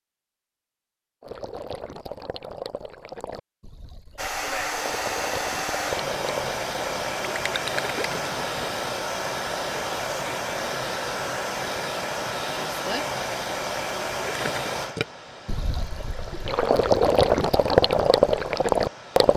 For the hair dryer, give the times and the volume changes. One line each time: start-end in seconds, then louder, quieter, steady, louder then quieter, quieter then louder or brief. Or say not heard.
4.2-19.3 quieter.